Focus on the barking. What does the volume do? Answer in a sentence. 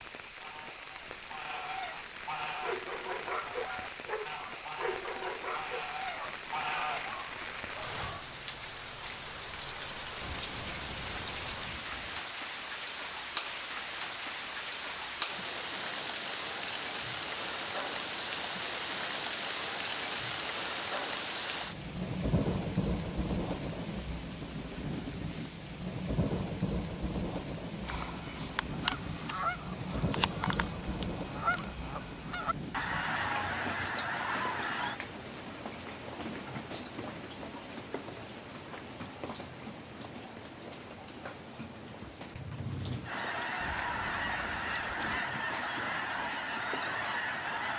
The volume of the barking goes down.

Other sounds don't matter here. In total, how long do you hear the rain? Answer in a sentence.
You can hear the rain for 48 seconds altogether.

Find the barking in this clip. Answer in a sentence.
You can hear the barking from 2.6 to 8.1 s.